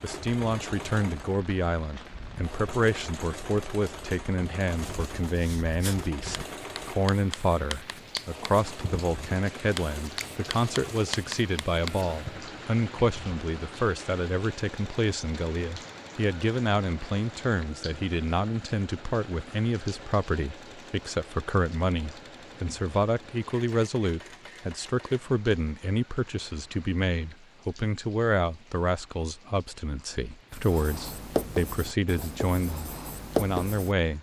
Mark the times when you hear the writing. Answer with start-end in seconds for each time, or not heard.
4.7-12.4, 30.6-34.0.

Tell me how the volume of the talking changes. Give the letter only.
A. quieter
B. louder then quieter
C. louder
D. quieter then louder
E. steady
E.